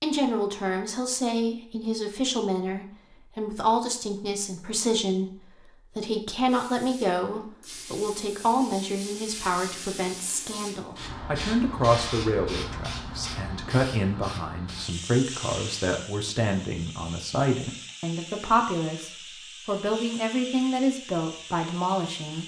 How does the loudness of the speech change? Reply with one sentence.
The volume of the speech stays about the same.